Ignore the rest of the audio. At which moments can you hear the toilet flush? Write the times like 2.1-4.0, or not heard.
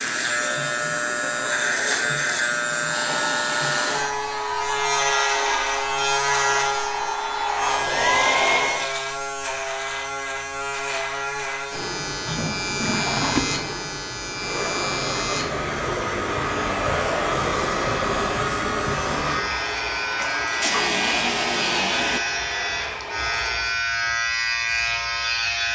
2.9-4.2, 12.2-13.6, 20.1-22.2.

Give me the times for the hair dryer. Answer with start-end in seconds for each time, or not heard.
2.9-8.9, 14.3-23.8.